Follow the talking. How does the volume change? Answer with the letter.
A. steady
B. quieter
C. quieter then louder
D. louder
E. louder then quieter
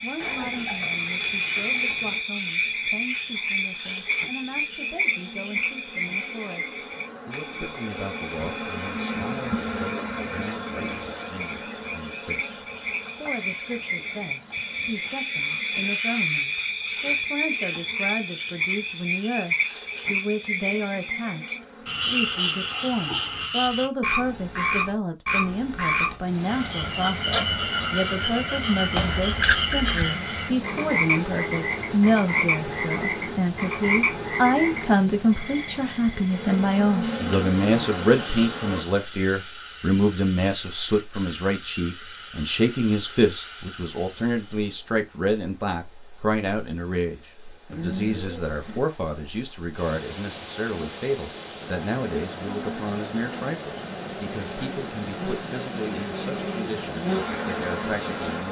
E.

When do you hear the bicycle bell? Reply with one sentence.
You can hear the bicycle bell from 28.9 to 30.1 s.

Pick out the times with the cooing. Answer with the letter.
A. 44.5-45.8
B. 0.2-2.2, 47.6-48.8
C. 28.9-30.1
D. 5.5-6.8
B.